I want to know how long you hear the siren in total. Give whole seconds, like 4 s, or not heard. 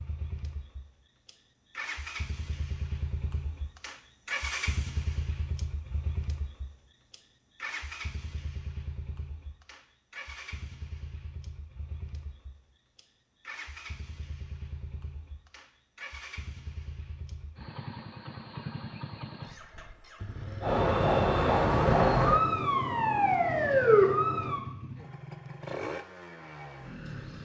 4 s.